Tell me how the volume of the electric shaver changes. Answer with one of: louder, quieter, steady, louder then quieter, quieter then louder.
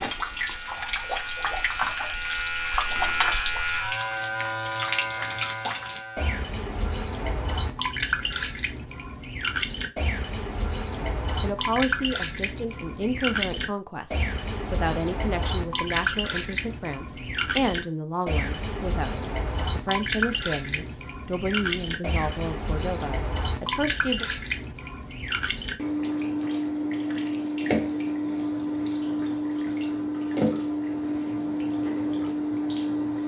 louder then quieter.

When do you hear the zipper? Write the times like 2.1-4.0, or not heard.
not heard.